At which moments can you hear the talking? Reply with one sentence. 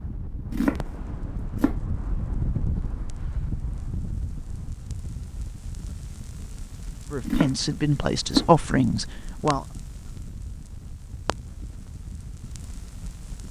You can hear the talking from 7.1 to 9.7 s.